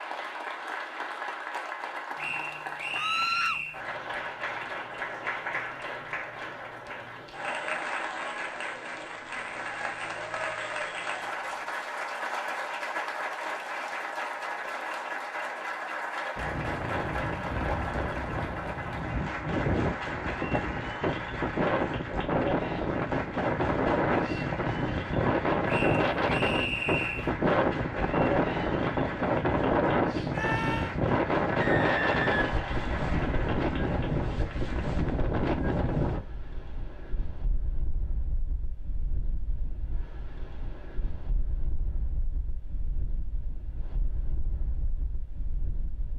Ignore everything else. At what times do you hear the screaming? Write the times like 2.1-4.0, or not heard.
2.9-3.6, 30.3-30.9.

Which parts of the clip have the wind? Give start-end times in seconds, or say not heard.
16.4-46.1.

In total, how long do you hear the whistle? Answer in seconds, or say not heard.
5 s.